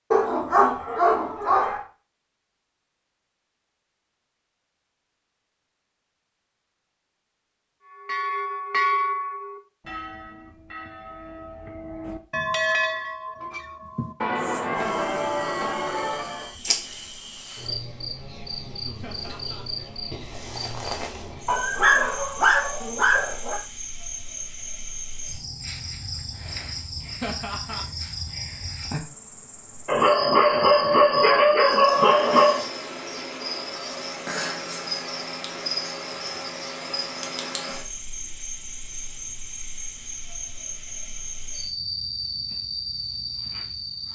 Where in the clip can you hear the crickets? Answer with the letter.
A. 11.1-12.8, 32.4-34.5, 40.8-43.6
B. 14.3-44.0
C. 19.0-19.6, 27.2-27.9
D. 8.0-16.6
B.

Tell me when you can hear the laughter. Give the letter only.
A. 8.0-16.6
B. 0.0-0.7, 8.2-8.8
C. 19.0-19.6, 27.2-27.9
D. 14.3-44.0
C.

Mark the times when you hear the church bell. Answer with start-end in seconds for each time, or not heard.
8.0-16.6.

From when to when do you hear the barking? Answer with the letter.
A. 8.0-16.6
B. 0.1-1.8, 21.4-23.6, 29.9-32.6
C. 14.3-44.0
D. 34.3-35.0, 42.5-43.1
B.